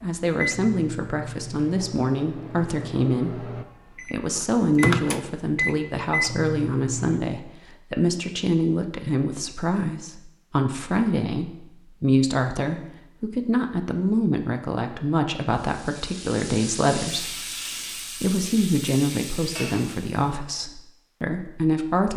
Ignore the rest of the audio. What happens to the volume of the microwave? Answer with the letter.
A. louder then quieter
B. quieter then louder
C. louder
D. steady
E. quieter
C.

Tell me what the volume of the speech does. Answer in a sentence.
The loudness of the speech stays about the same.